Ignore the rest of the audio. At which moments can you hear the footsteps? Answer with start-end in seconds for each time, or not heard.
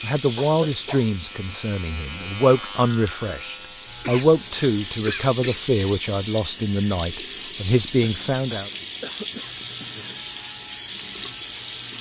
not heard.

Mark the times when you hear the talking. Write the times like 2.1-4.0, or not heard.
0.0-8.7.